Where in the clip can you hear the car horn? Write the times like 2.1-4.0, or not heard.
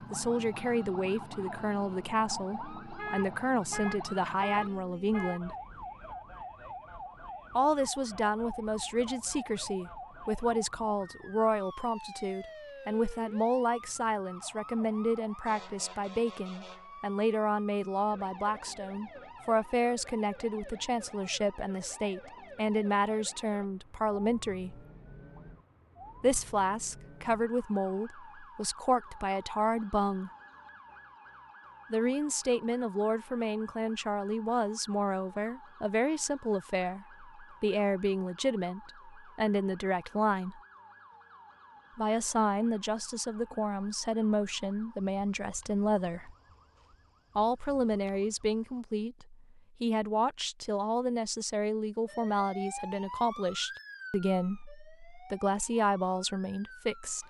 3.0-5.4.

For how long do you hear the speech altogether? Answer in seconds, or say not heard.
50 s.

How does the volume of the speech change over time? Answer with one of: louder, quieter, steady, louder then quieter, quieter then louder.
steady.